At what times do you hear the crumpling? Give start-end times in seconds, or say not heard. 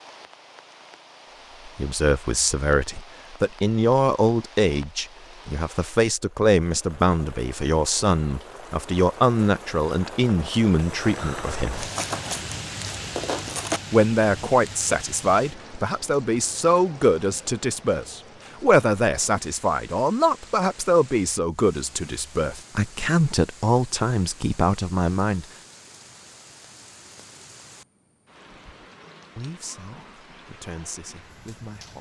11.8-13.8.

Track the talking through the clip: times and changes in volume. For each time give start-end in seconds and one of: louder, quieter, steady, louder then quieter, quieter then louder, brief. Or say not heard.
1.6-11.8 steady
13.9-25.4 steady
29.4-31.9 brief.